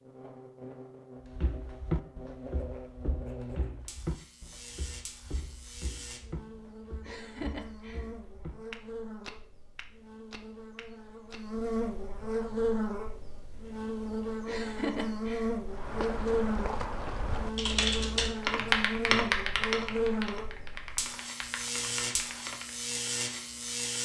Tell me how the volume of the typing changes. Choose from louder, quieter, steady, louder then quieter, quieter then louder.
quieter.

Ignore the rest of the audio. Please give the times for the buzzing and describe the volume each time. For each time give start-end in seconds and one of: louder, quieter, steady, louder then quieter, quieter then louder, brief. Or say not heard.
0.0-24.0 louder.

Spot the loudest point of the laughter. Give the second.
15 s.